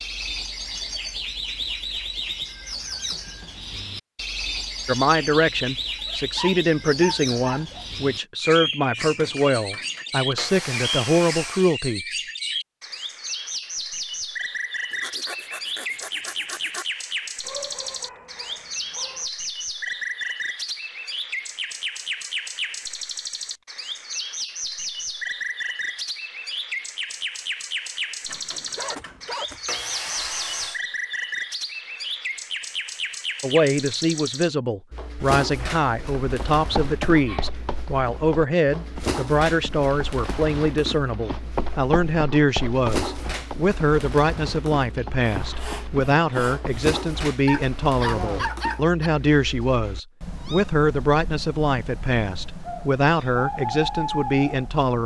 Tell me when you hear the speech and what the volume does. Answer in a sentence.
The speech can be heard from 4.8 to 12.0 s, at a steady volume; and from 33.4 to 55.0 s, at a steady volume.